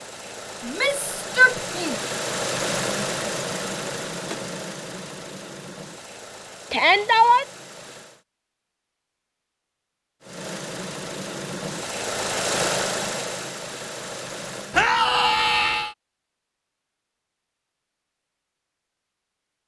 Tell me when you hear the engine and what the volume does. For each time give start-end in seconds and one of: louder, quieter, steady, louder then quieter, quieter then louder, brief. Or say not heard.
0.0-8.2 louder then quieter
10.2-14.8 louder then quieter.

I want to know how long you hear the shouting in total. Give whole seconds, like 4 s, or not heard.
3 s.